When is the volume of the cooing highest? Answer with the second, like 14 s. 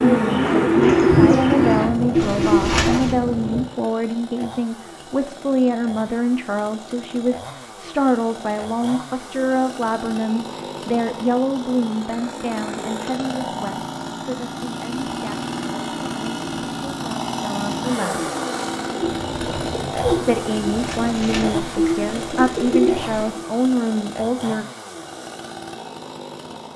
1 s.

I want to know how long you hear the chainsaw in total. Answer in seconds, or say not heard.
27 s.